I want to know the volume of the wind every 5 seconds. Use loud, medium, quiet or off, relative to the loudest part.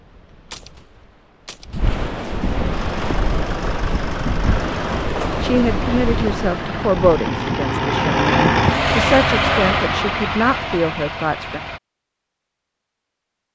loud, loud, off.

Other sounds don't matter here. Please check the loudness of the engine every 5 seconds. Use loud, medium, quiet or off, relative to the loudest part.
quiet, loud, medium.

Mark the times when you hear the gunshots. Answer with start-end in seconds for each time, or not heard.
0.5-2.0.